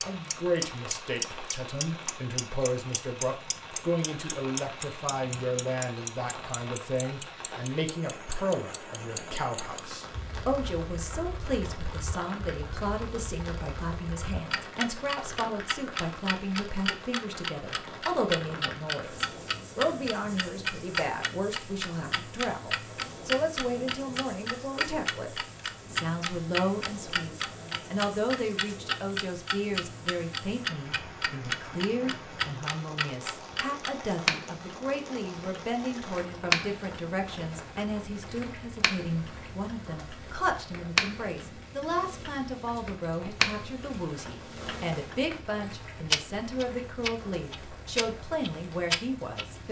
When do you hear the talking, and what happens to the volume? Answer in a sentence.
The talking can be heard from 0.1 to 49.6 s, at a steady volume.